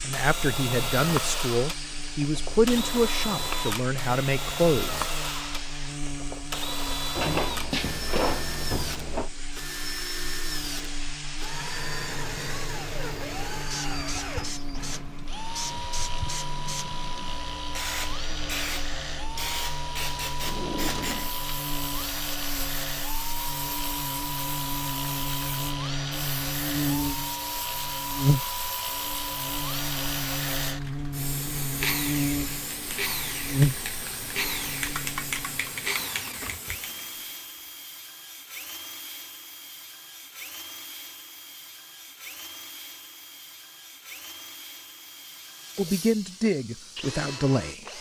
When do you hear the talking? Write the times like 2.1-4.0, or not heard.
0.0-5.0, 45.8-47.9.